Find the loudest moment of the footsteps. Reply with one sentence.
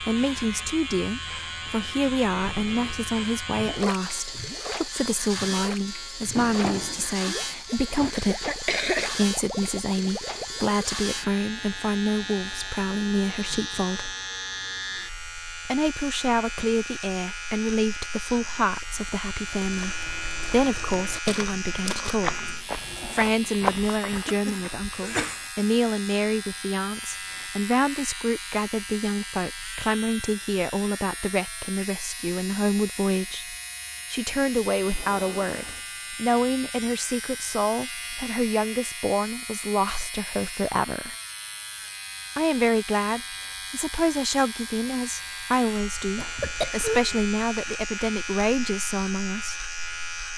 The volume of the footsteps peaks at 24 seconds.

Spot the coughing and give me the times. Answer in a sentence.
The coughing can be heard from 8.2 to 9.1 s, from 24.1 to 25.4 s and from 46.1 to 47.2 s.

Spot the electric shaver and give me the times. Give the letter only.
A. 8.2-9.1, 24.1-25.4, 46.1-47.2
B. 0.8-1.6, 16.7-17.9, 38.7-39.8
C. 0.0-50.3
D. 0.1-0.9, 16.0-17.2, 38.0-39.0
C.